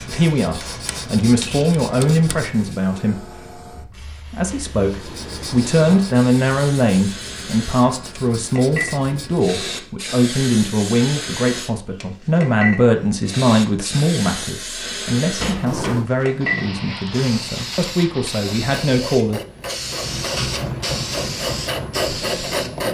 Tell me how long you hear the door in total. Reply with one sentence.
You can hear the door for 2 seconds altogether.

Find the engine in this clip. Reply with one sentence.
You can hear the engine from 19.8 to 22.8 s.